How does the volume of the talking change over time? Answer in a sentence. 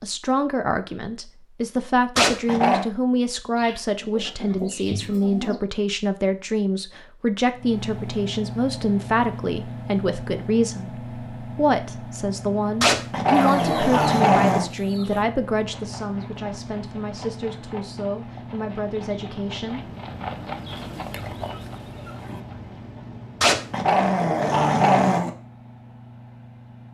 The loudness of the talking goes down.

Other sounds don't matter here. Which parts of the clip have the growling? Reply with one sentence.
You can hear the growling from 2.1 to 2.9 s, from 12.8 to 14.7 s and from 23.4 to 25.3 s.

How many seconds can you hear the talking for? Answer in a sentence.
The talking can be heard for 20 seconds in total.